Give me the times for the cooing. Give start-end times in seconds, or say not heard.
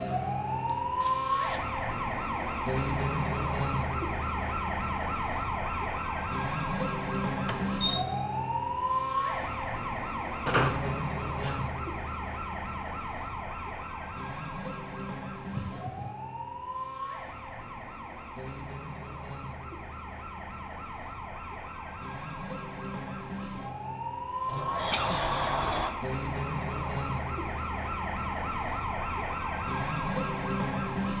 not heard.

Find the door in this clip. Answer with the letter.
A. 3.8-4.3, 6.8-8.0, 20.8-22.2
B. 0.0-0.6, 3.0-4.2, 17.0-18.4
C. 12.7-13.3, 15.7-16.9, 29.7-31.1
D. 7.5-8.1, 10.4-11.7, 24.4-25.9
D.